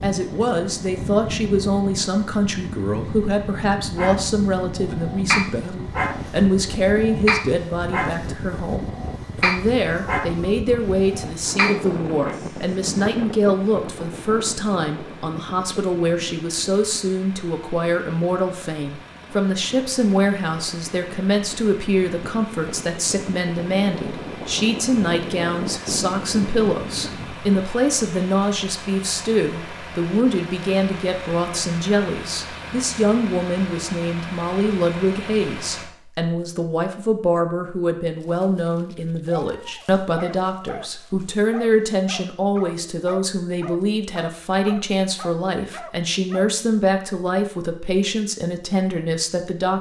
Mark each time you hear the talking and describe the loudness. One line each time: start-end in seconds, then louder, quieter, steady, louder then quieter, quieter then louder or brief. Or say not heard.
0.0-49.7 steady.